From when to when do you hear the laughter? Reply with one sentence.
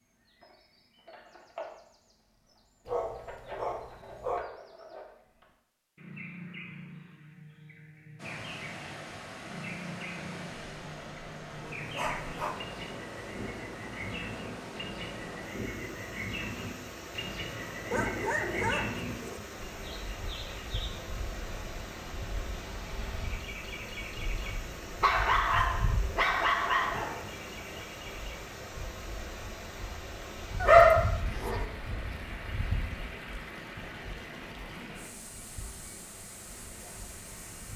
You can't hear the laughter here.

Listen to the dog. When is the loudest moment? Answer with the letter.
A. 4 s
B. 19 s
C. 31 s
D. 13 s
C.